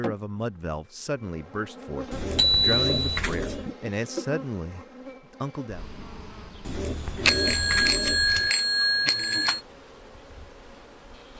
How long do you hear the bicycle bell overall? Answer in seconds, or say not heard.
3 s.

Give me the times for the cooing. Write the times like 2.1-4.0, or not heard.
2.1-3.7, 6.7-8.5.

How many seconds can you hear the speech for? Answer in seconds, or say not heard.
6 s.